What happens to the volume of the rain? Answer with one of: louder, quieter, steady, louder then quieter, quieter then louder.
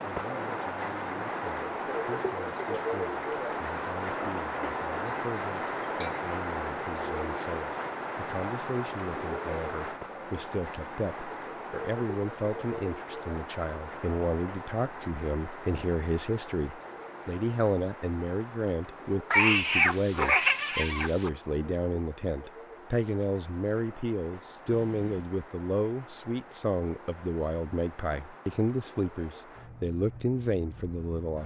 quieter.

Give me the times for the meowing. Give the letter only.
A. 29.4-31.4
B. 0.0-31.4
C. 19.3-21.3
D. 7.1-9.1
C.